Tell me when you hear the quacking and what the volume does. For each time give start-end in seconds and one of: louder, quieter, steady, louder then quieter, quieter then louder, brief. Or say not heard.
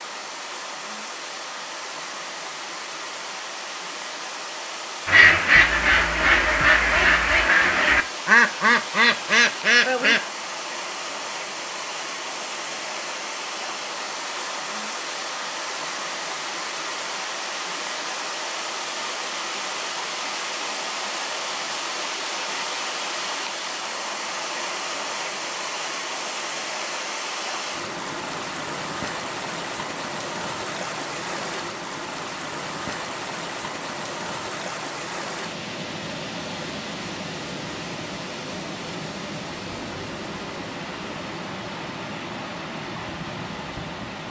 5.0-10.2 steady.